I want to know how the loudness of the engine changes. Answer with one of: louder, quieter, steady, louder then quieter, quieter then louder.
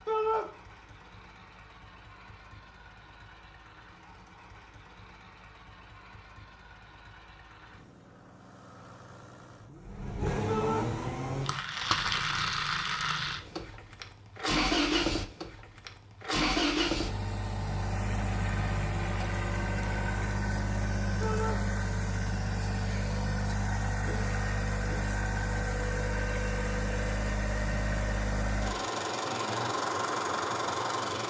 louder.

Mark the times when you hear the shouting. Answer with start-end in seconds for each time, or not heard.
0.1-0.5, 10.4-10.9, 21.2-21.6.